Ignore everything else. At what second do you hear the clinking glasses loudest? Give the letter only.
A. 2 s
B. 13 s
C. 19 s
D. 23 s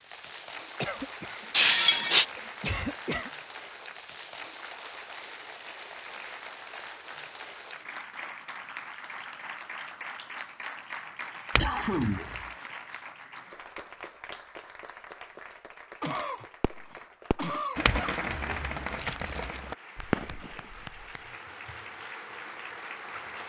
A.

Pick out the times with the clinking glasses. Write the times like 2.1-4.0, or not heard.
1.5-2.2, 11.6-12.4, 17.9-19.6.